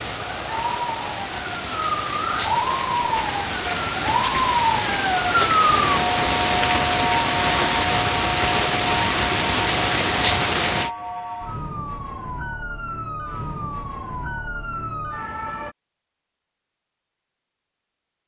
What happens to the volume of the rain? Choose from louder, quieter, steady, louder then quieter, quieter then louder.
louder.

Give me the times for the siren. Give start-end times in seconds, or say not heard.
0.0-15.8.